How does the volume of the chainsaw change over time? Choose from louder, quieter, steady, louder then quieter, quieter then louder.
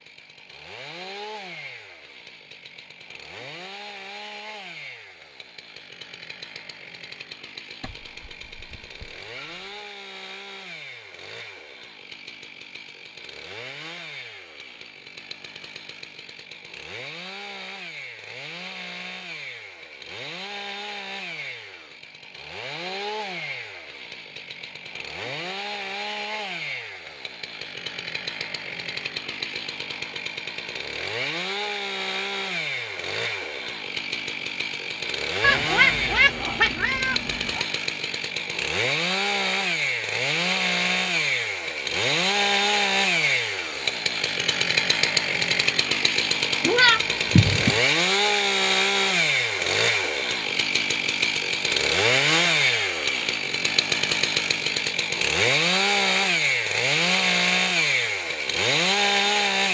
louder.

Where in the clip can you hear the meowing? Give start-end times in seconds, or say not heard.
7.8-9.8, 35.4-37.6, 46.6-47.8.